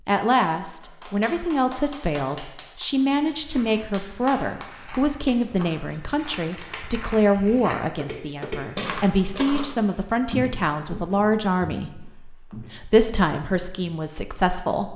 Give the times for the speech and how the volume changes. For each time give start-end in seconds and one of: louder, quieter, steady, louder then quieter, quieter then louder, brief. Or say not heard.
0.1-14.9 steady.